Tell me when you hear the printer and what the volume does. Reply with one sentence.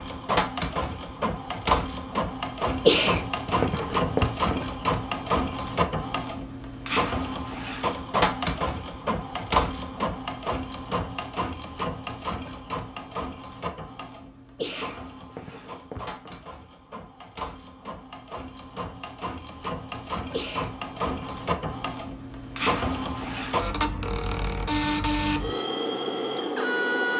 The printer can be heard from 0.0 to 27.1 s, getting quieter then louder.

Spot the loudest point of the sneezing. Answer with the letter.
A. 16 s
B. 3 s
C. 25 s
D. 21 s
B.